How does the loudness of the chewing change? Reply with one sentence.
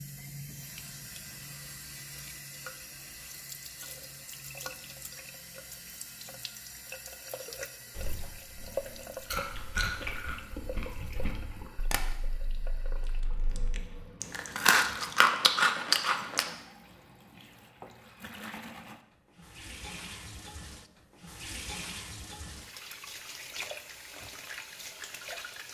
The loudness of the chewing goes down, then up.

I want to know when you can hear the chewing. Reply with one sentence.
The chewing can be heard from 8.0 to 16.4 s.